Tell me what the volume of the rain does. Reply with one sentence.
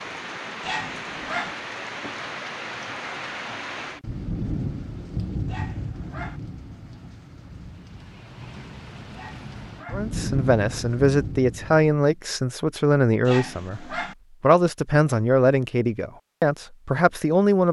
The volume of the rain goes down, then up.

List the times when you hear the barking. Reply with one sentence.
You can hear the barking from 0.6 to 1.6 s, from 5.5 to 6.4 s, from 9.1 to 10.1 s and from 13.2 to 14.2 s.